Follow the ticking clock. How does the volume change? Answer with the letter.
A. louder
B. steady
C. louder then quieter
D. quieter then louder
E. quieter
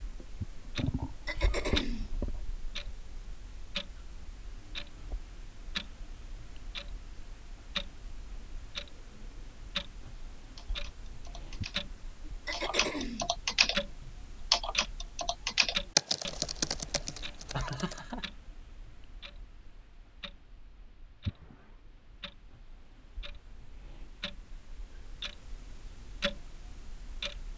D.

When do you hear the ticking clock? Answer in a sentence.
You can hear the ticking clock from 0.0 to 27.5 s.